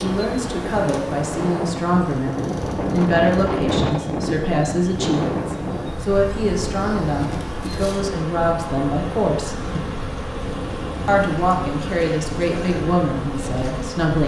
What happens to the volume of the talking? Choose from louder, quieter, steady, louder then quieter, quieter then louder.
steady.